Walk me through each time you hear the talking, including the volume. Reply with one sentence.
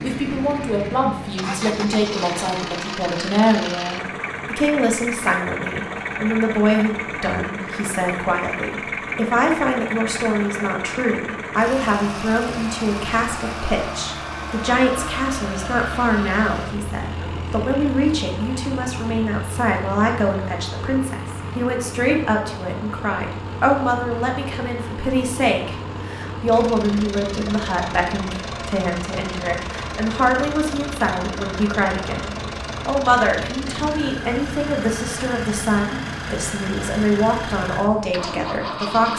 You can hear the talking from 0.0 to 39.1 s, at a steady volume.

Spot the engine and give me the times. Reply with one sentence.
The engine can be heard from 0.0 to 39.1 s.